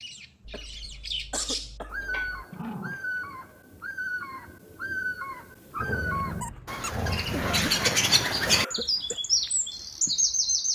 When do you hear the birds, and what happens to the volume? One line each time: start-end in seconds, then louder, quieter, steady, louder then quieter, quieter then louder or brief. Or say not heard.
0.0-10.7 louder.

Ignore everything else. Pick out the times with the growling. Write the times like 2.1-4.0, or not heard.
2.1-3.0, 5.8-7.8.